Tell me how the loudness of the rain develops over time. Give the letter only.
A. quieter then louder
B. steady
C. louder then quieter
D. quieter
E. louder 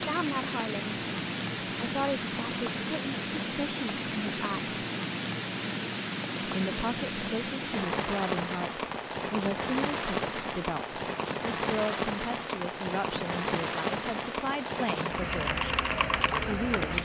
B.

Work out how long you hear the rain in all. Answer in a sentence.
You can hear the rain for 17 seconds altogether.